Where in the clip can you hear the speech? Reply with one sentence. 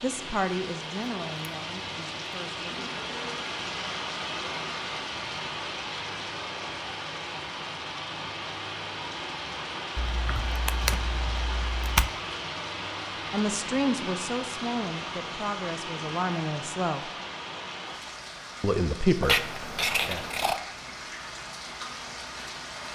You can hear the speech from 0.0 to 3.0 s, from 13.3 to 17.1 s and from 18.6 to 20.2 s.